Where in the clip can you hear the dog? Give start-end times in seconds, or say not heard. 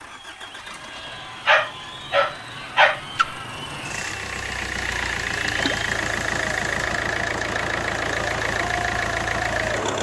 1.4-3.0.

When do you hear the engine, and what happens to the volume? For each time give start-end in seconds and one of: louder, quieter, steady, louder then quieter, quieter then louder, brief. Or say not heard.
0.0-9.9 louder.